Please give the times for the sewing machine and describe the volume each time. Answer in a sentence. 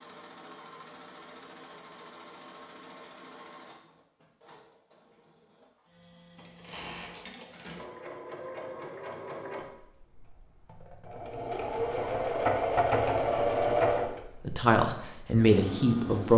You can hear the sewing machine from 0.0 to 16.3 s, getting quieter then louder.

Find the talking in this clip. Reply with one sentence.
You can hear the talking from 14.4 to 16.3 s.